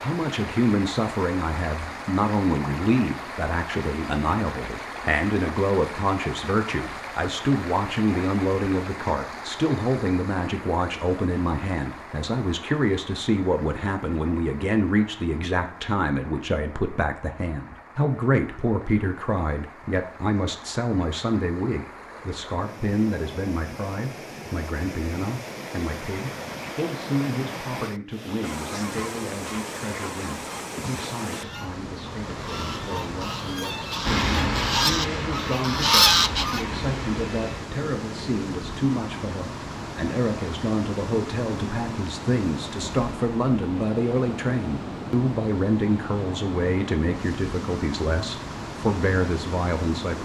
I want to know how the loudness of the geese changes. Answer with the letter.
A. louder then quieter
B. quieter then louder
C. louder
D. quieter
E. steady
C.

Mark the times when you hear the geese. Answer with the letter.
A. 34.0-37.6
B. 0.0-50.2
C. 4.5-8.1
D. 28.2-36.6
D.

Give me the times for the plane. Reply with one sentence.
You can hear the plane from 34.0 to 37.6 s.